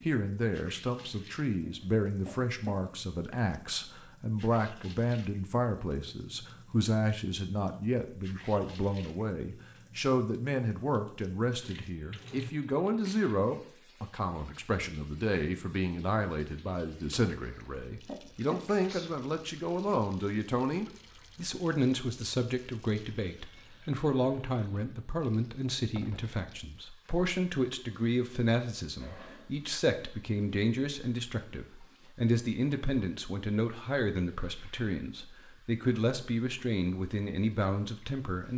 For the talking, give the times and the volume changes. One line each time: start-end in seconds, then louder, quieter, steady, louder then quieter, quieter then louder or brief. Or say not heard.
0.0-38.5 steady.